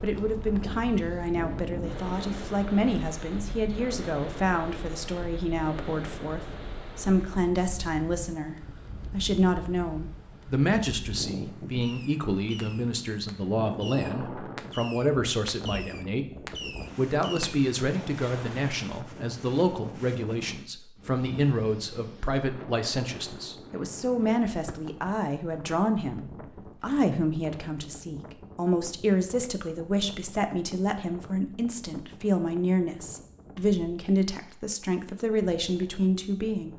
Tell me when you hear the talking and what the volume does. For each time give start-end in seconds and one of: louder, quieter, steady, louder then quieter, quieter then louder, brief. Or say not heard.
0.0-36.7 steady.